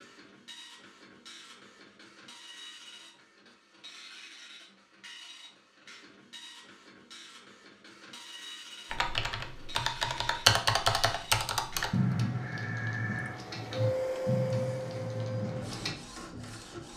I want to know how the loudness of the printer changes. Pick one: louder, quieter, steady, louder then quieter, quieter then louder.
louder.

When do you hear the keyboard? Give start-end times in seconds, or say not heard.
8.9-15.9.